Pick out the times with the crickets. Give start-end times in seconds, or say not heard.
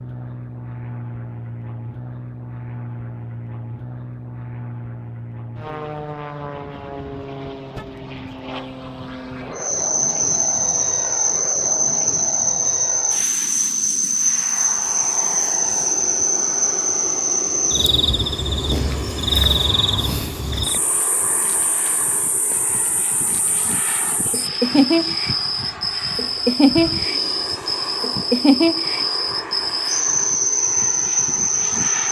9.6-32.0.